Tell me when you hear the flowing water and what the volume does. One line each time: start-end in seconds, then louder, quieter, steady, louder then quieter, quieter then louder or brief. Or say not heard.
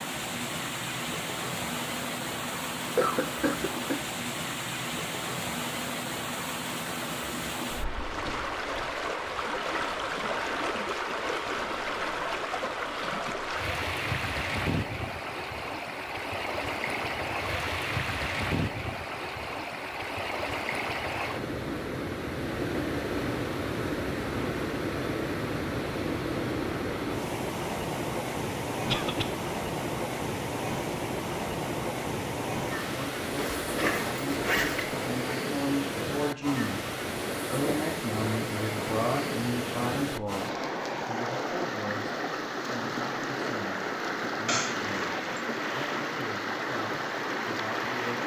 0.0-48.2 steady.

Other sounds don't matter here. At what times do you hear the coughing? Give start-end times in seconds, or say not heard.
3.0-4.0, 28.9-29.3, 44.5-45.5.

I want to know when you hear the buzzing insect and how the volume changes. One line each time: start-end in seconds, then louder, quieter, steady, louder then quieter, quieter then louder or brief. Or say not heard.
not heard.